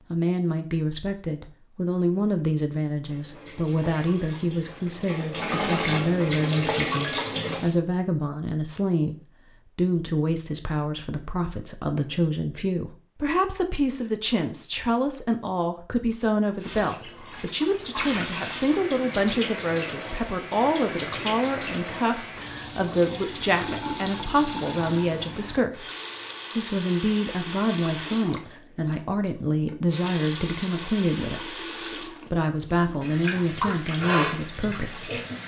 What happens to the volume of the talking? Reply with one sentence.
The volume of the talking stays about the same.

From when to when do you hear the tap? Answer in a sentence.
You can hear the tap from 3.0 to 7.8 s and from 16.6 to 35.4 s.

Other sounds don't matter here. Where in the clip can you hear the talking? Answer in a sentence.
The talking can be heard from 0.1 to 25.9 s and from 26.6 to 35.1 s.